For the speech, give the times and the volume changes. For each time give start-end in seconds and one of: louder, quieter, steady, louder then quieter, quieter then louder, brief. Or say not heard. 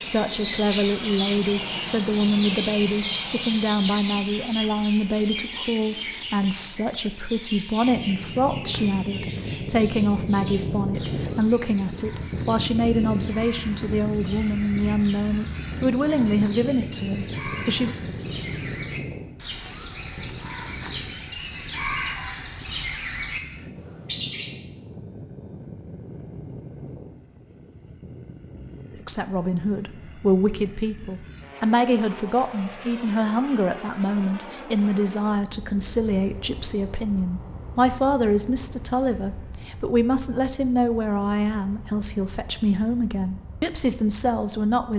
0.0-17.9 steady
29.0-44.9 steady.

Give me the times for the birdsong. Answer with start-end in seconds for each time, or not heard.
0.0-24.6.